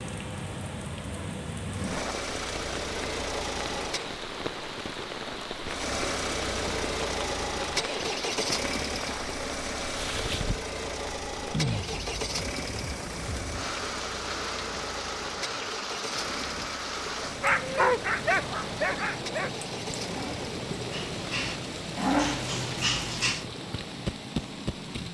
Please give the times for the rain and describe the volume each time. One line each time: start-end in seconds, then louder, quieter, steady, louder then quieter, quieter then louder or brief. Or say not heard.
0.0-25.0 steady.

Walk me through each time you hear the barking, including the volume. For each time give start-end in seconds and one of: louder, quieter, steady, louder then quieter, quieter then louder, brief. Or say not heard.
17.4-23.4 quieter then louder.